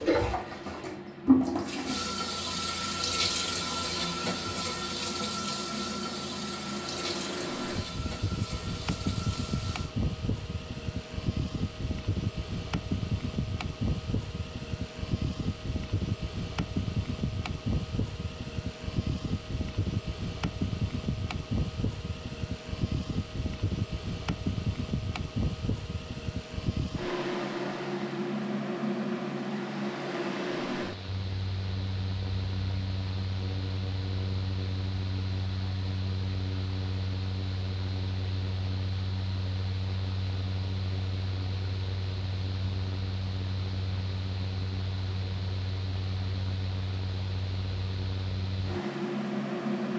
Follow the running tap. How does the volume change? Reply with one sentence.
The loudness of the running tap goes down.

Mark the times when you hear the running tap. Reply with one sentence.
The running tap can be heard from 0.0 to 9.9 s.